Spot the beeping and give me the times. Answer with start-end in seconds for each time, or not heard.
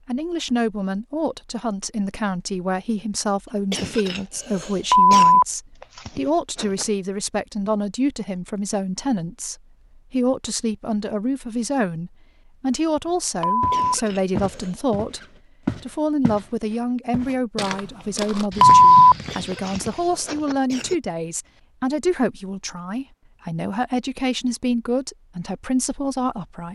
4.9-6.8, 13.4-13.9, 18.6-20.6.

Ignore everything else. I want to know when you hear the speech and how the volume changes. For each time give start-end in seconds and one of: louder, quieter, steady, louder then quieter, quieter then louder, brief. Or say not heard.
0.1-26.7 steady.